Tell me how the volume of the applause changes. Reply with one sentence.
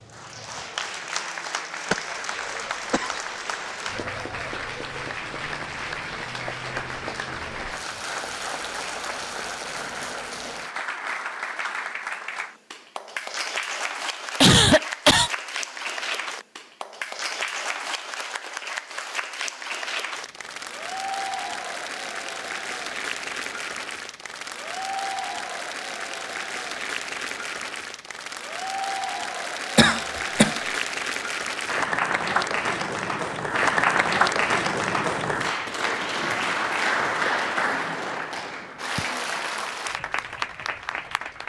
The loudness of the applause goes up.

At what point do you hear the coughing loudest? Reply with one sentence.
The loudest moment of the coughing is at 15 seconds.